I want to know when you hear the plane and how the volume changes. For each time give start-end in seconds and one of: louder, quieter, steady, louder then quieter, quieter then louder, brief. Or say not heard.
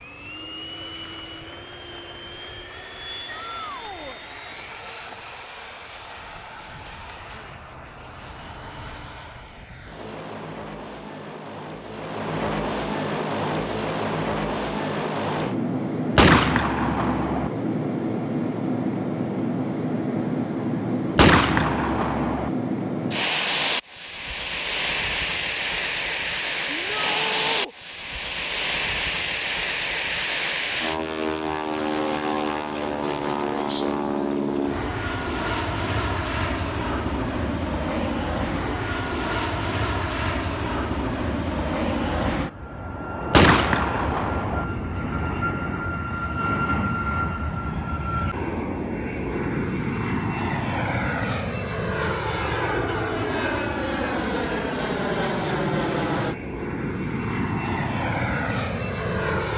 0.0-59.5 louder.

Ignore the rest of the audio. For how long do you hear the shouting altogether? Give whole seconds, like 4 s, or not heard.
3 s.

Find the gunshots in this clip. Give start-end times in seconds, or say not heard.
16.1-17.5, 21.1-22.5, 43.3-44.6.